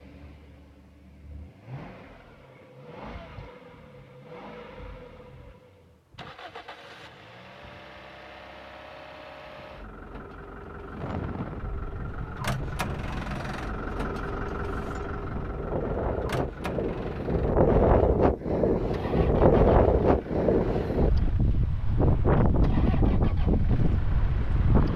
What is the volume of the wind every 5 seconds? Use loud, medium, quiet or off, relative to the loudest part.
off, off, quiet, loud, loud.